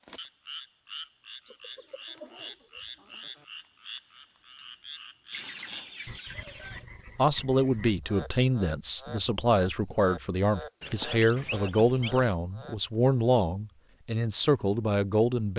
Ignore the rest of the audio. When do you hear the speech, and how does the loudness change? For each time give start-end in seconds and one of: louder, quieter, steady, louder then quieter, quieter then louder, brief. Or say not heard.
7.2-15.5 steady.